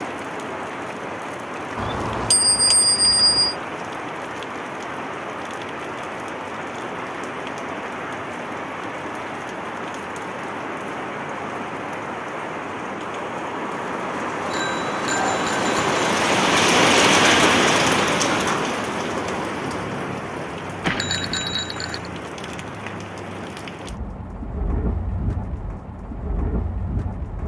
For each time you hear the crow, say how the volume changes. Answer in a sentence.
You can't hear the crow here.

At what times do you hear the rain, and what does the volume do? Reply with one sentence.
The rain can be heard from 0.0 to 27.4 s, getting louder then quieter.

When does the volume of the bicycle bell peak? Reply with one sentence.
The volume of the bicycle bell peaks at 3 seconds.